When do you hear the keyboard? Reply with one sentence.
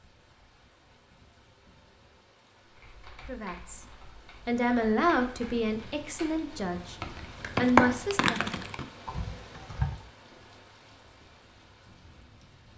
The keyboard can be heard from 2.6 to 10.0 s.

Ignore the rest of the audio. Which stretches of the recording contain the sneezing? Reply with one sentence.
You can't hear the sneezing here.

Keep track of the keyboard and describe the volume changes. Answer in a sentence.
The volume of the keyboard goes up, then down.